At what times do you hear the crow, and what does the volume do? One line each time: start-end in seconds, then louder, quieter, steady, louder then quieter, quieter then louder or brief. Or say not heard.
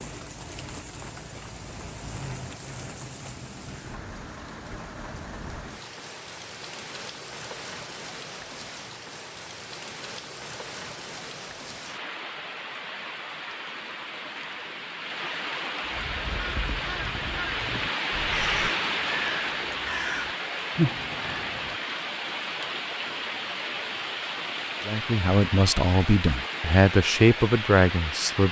15.8-21.8 louder.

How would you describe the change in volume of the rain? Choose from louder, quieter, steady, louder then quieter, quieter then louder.
louder.